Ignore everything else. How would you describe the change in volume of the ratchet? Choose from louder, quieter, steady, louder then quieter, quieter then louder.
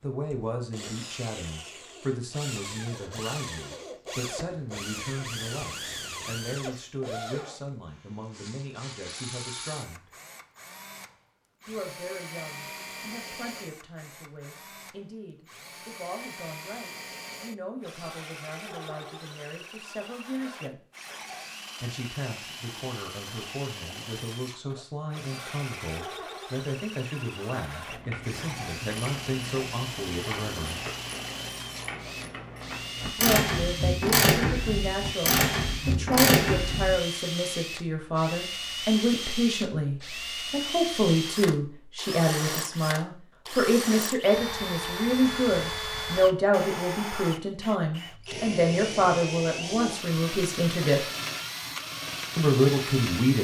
louder.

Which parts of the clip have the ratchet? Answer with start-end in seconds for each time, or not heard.
27.9-37.0.